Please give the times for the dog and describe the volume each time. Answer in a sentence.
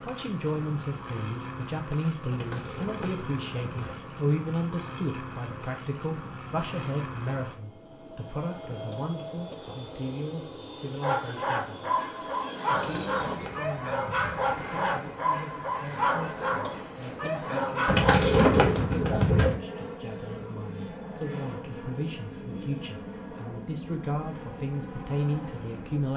The dog can be heard from 11.0 to 18.3 s, at a steady volume.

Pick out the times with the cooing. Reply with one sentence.
The cooing can be heard from 2.3 to 4.1 s, from 12.7 to 14.6 s and from 17.9 to 19.6 s.